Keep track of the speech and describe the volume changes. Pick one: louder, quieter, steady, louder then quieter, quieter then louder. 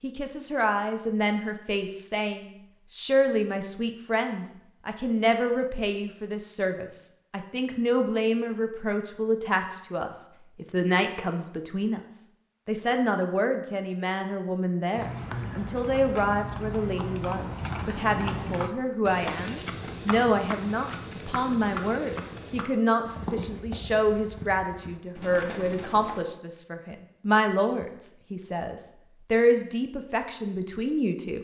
steady.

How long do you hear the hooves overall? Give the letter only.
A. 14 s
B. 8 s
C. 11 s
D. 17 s
C.